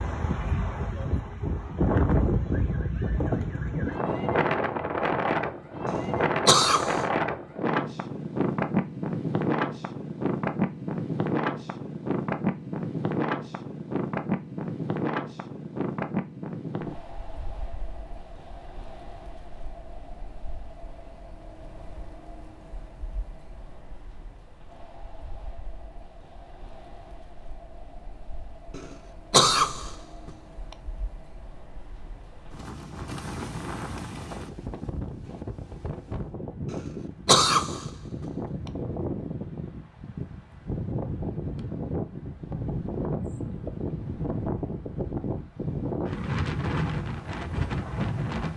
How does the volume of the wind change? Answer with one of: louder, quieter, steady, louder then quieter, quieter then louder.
quieter then louder.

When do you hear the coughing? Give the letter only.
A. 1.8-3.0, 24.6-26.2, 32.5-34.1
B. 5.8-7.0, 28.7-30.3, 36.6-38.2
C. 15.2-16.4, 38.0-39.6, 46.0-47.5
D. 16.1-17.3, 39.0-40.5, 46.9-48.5
B.